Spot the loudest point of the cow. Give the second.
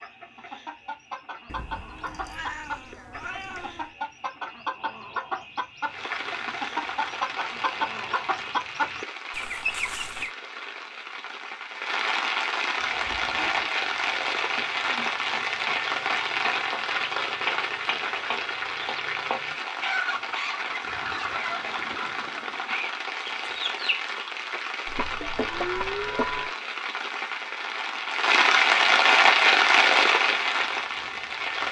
26 s.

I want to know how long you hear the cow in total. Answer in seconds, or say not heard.
2 s.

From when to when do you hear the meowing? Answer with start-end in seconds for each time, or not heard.
1.4-4.0.